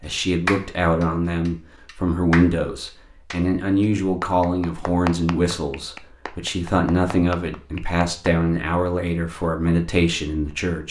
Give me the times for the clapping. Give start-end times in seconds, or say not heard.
0.5-8.3.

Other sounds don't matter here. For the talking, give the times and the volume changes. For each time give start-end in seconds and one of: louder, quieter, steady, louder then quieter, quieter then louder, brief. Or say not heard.
0.0-10.8 steady.